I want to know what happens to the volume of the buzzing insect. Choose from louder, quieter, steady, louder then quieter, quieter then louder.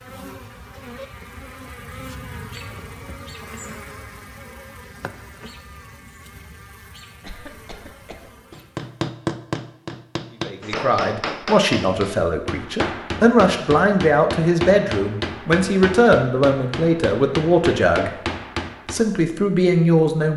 quieter.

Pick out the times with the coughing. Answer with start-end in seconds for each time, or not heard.
7.2-8.3.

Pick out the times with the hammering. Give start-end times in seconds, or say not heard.
8.5-19.1.